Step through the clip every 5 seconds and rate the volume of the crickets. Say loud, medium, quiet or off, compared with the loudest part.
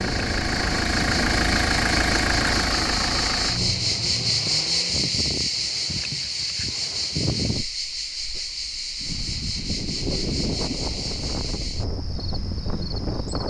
loud, loud, medium.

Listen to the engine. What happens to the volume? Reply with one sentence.
The loudness of the engine goes down.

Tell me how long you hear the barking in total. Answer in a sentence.
The barking can't be heard in this clip.